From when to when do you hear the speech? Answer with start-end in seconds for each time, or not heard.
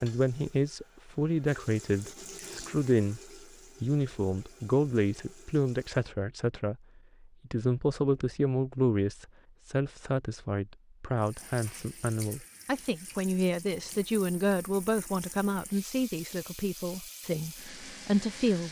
0.0-3.2, 3.8-6.8, 7.5-18.6.